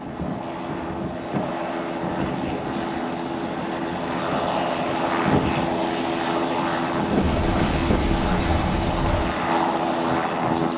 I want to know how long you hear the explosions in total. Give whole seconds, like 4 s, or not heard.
2 s.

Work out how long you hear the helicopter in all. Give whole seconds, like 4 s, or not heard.
11 s.